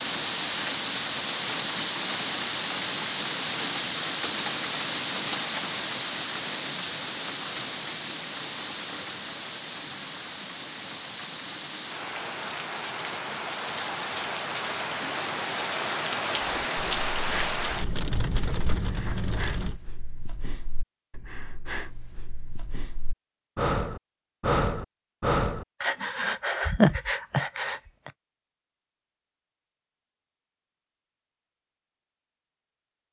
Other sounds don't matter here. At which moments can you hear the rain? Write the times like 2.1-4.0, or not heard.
0.0-19.8.